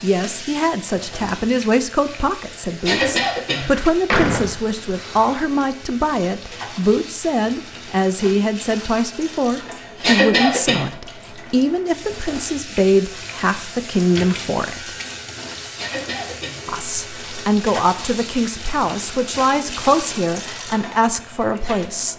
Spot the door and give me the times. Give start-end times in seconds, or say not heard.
3.6-5.5.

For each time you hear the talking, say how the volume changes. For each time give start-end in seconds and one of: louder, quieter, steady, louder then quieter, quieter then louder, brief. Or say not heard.
0.0-14.9 steady
16.6-22.1 steady.